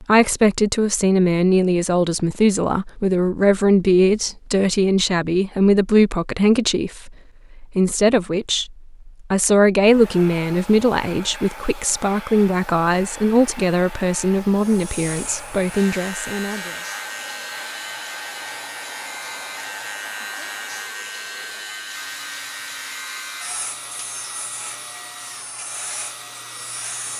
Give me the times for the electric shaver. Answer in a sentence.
The electric shaver can be heard from 14.6 to 27.1 s.